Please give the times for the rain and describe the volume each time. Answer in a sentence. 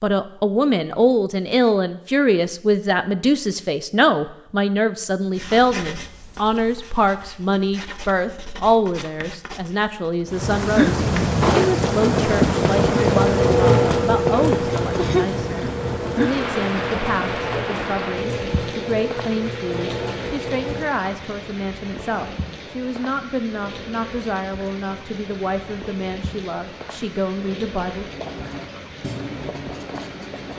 The rain can be heard from 10.2 to 30.5 s, getting quieter.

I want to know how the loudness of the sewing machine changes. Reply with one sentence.
The volume of the sewing machine goes down.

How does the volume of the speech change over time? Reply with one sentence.
The loudness of the speech goes down.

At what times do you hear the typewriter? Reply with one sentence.
The typewriter can't be heard in this clip.